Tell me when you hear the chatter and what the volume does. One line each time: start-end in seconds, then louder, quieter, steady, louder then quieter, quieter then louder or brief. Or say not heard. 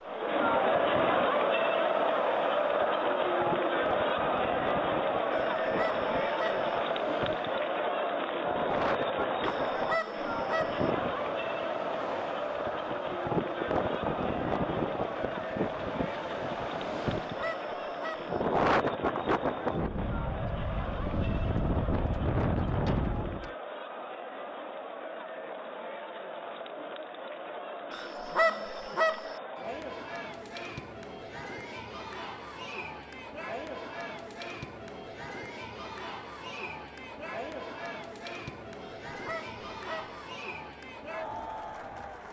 0.0-42.2 quieter.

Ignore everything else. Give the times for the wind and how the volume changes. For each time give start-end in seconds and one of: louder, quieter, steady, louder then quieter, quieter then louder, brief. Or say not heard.
0.0-23.5 louder.